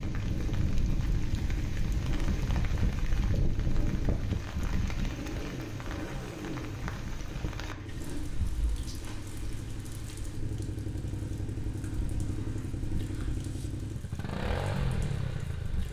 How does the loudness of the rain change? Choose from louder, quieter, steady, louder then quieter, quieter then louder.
quieter.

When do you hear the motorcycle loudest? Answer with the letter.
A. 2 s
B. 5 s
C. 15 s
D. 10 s
C.